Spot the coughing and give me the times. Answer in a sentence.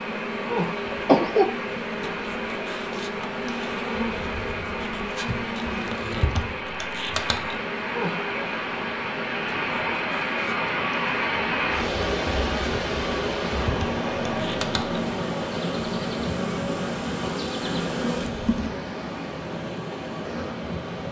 The coughing can be heard from 0.9 to 1.6 s.